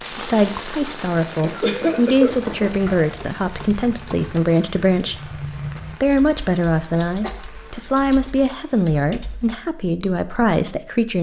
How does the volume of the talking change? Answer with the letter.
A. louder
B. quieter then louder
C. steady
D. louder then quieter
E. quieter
C.